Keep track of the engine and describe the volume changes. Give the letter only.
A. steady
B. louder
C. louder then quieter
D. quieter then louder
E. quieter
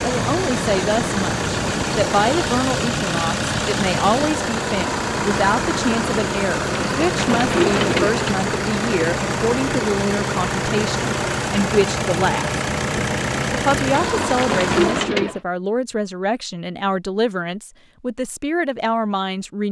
A.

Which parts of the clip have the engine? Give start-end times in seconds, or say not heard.
0.0-15.1.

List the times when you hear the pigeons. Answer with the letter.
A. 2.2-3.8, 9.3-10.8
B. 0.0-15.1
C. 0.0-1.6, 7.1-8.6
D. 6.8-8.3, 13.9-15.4
D.